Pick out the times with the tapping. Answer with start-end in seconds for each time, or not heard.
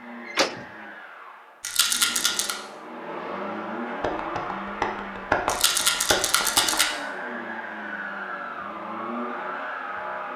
4.0-6.8.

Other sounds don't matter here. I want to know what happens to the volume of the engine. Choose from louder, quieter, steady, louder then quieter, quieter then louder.
louder.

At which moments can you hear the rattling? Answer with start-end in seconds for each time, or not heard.
1.6-2.5, 5.5-6.8.